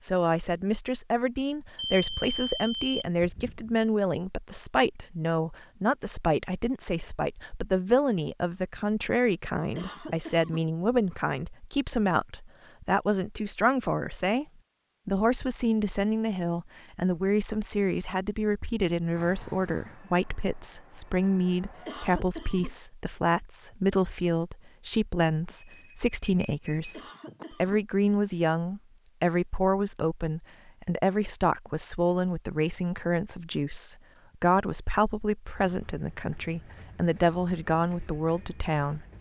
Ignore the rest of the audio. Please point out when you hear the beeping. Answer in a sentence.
You can hear the beeping from 1.8 to 3.7 s and from 25.5 to 27.4 s.